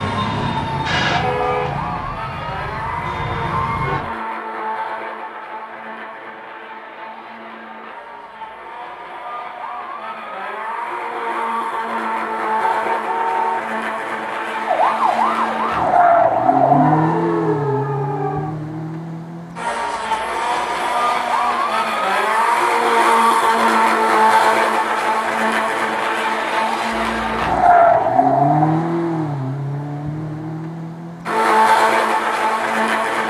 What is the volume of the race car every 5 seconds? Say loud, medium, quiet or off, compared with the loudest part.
medium, quiet, medium, loud, loud, loud, loud.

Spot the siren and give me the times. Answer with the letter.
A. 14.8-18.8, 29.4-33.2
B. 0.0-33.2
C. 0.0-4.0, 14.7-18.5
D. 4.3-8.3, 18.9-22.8
C.